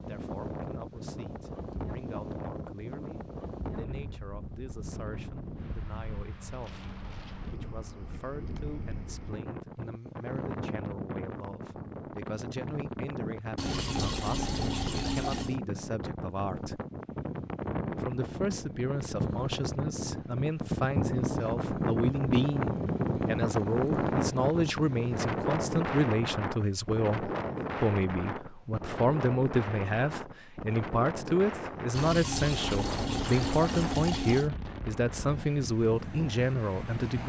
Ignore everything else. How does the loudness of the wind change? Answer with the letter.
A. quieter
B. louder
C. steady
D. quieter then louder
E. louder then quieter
E.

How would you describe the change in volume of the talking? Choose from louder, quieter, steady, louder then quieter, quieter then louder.
louder.